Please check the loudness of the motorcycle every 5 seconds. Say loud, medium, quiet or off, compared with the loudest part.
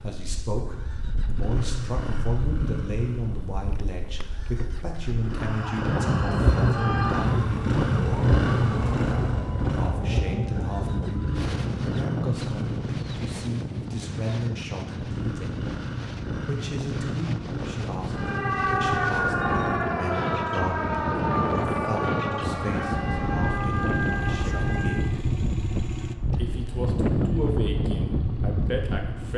medium, loud, medium, medium, medium, medium.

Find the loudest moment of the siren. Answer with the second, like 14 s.
19 s.